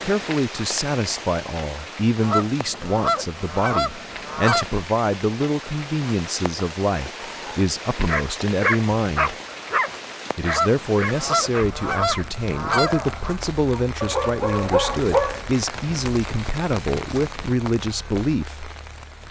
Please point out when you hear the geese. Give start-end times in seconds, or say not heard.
2.2-4.8, 10.4-13.3.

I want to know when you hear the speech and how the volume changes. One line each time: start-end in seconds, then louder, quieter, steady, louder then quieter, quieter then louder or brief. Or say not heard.
0.0-9.3 steady
10.3-18.8 steady.